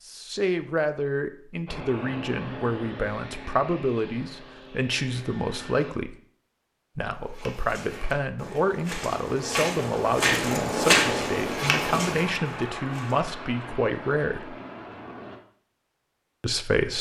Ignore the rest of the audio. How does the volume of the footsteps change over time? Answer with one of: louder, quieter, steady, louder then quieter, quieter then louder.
louder then quieter.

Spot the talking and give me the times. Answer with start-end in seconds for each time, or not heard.
0.1-6.2, 7.0-14.6, 16.4-16.9.